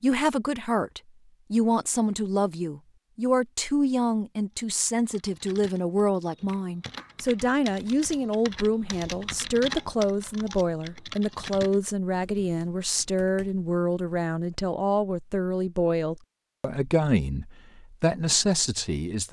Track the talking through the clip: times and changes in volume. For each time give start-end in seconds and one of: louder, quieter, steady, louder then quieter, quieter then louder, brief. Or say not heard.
0.0-19.2 steady.